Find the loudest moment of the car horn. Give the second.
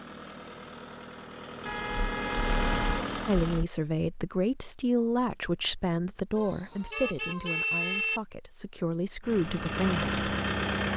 8 s.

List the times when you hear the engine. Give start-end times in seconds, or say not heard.
0.0-3.6, 9.2-10.9.